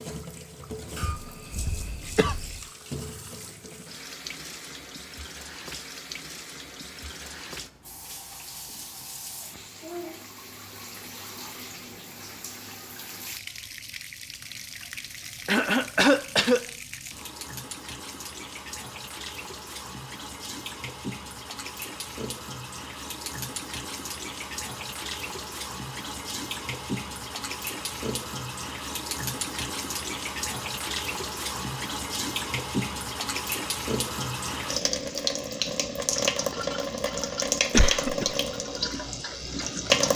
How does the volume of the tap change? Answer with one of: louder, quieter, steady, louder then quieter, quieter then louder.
louder.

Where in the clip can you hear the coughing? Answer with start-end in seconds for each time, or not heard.
0.9-2.6, 15.4-16.6, 36.9-38.4.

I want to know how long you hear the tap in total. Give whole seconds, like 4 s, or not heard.
40 s.